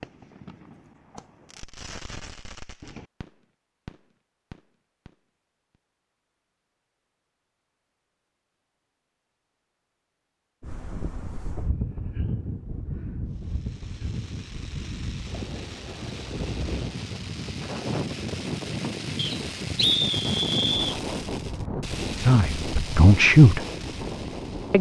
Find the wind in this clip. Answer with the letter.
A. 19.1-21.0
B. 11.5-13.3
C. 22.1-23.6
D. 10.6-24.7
D.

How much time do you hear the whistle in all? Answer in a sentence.
The whistle can be heard for 2 seconds in total.